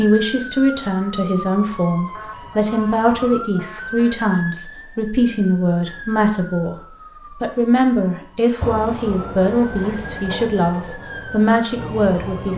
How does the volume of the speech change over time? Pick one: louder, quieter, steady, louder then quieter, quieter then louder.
steady.